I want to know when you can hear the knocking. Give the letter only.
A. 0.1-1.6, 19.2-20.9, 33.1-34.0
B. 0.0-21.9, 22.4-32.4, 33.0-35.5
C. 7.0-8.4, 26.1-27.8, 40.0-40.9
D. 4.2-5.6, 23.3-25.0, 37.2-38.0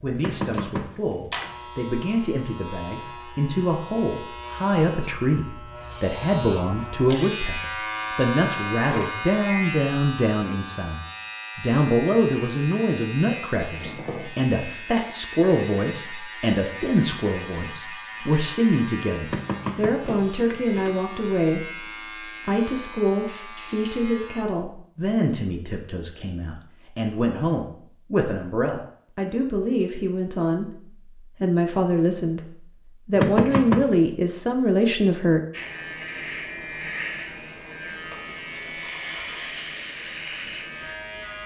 A.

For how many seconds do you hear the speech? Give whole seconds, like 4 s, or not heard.
34 s.